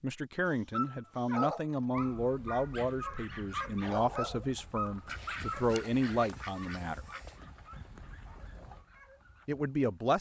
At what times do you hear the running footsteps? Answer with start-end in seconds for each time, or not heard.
not heard.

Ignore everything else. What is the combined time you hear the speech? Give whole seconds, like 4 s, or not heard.
8 s.